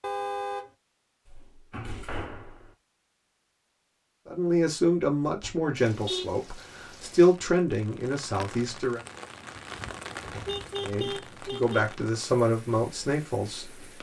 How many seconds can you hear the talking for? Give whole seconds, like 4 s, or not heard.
8 s.